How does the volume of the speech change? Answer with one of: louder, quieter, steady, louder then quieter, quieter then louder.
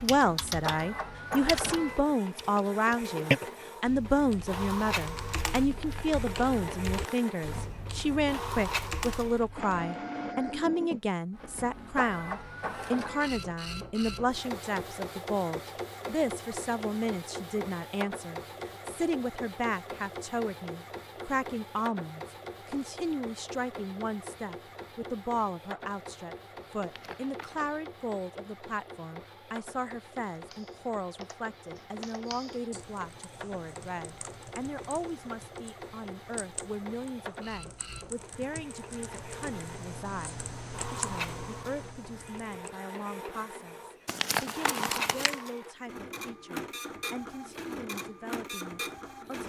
quieter.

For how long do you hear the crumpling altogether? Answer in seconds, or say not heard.
4 s.